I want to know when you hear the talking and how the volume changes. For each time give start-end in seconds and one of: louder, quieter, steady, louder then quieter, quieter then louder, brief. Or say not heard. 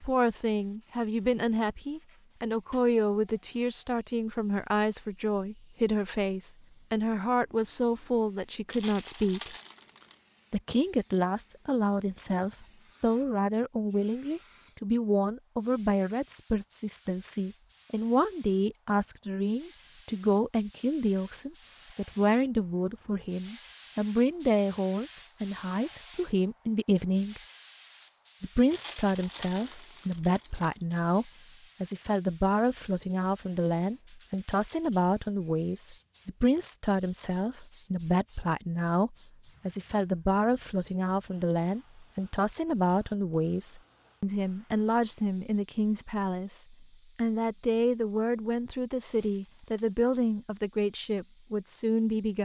0.0-9.6 steady
10.5-27.4 steady
28.4-52.4 steady.